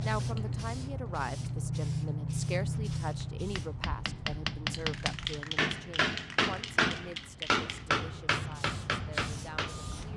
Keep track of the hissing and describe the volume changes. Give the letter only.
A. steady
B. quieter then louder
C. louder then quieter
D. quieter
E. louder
D.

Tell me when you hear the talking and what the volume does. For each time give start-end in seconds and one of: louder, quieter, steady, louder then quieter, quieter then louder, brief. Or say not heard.
0.0-10.1 quieter.